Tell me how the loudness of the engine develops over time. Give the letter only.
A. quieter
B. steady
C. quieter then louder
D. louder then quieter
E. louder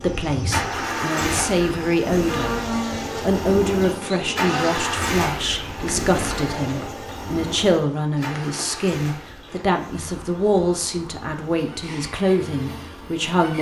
A.